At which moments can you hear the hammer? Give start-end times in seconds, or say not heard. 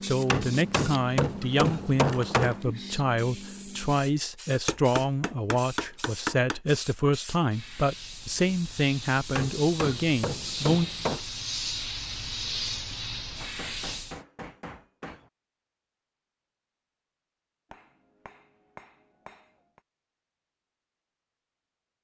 0.3-2.6, 4.7-6.5, 9.3-11.2, 13.4-15.3, 17.7-19.8.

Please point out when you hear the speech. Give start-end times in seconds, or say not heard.
0.0-10.9.